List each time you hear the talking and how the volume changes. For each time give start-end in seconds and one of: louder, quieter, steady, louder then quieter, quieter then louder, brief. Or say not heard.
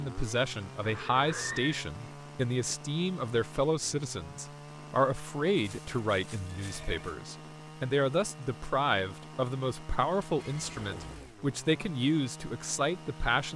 0.0-13.5 steady.